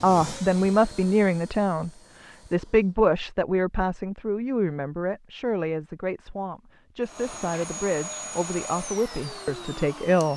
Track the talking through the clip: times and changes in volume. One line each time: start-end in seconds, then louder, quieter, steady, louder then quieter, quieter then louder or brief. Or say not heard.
0.0-10.3 quieter.